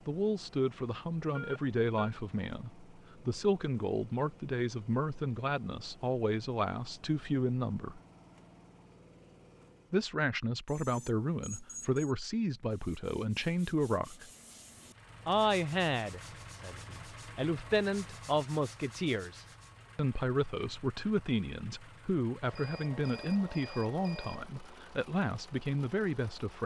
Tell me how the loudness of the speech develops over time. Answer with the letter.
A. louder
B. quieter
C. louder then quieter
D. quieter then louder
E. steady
E.